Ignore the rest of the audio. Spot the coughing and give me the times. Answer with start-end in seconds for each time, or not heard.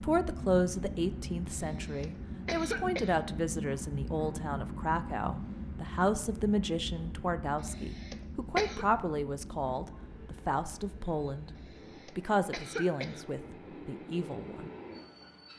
1.5-3.2, 7.6-8.8, 11.6-13.2.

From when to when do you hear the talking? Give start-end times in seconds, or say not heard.
0.0-11.5, 12.2-14.7.